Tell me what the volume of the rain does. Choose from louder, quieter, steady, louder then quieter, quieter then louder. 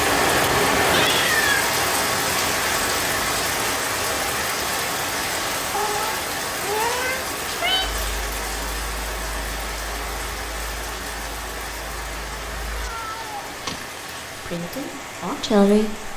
quieter.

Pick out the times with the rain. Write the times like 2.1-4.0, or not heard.
0.0-16.1.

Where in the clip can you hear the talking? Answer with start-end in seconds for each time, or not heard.
14.3-16.1.